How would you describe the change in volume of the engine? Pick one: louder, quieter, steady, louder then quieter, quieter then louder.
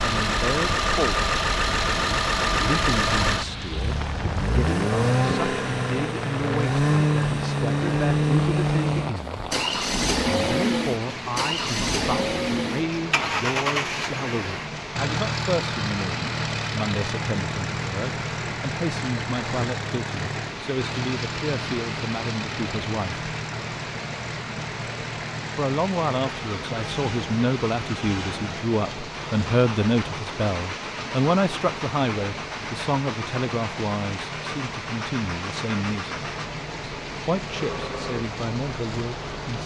quieter.